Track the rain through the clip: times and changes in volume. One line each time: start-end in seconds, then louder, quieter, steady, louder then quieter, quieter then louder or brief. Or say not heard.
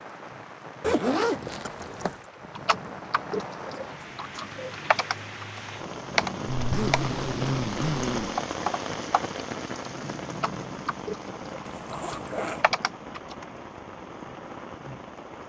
0.0-15.4 louder then quieter.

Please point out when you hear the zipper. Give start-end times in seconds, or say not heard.
0.8-2.2, 6.5-8.4, 11.7-12.7.